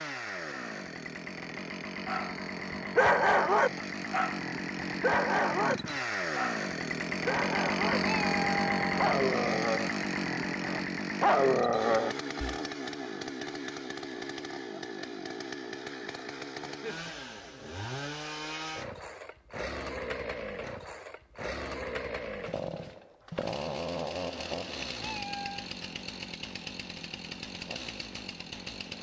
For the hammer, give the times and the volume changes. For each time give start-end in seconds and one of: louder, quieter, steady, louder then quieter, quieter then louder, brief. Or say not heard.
not heard.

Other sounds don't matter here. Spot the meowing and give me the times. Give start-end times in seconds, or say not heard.
8.0-8.9, 25.0-25.7.